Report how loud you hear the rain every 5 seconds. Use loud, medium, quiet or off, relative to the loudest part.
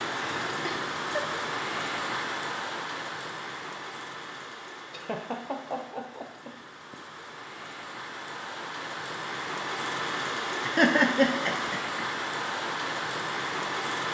loud, medium, loud.